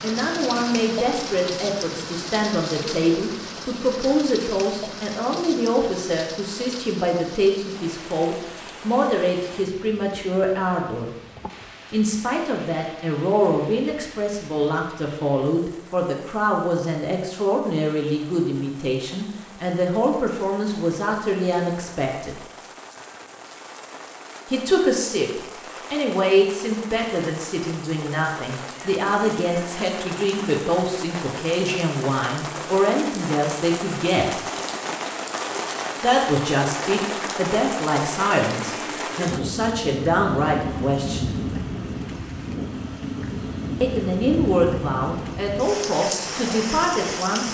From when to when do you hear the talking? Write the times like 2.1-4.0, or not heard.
0.0-11.2, 11.9-22.4, 24.4-34.5, 36.0-41.4, 43.8-47.4.